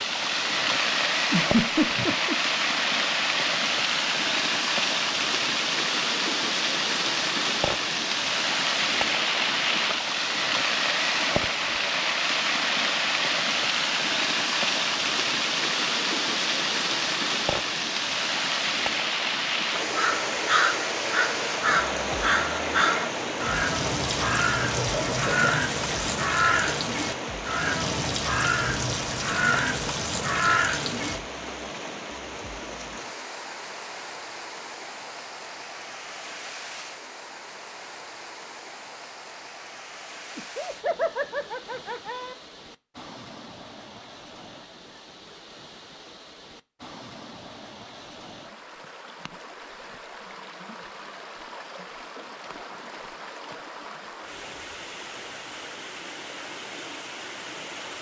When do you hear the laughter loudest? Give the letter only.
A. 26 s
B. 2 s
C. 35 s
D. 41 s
B.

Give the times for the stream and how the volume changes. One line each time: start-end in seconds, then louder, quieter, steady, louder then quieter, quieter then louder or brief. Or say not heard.
0.0-57.9 quieter.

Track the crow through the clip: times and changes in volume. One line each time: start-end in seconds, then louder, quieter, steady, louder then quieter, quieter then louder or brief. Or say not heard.
19.9-31.2 steady.